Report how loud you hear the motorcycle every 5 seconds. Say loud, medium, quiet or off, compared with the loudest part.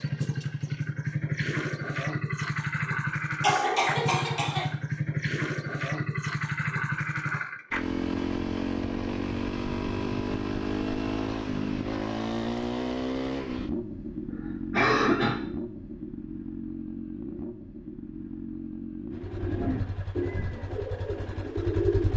loud, loud, loud, medium, medium.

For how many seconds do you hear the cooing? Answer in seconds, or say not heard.
3 s.